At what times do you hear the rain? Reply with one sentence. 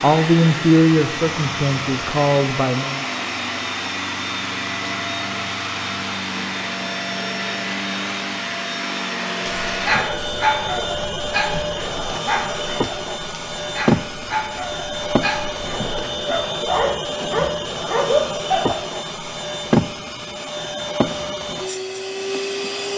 You can't hear the rain here.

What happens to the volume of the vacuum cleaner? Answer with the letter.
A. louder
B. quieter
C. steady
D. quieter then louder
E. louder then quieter
C.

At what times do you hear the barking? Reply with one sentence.
The barking can be heard from 9.4 to 18.8 s.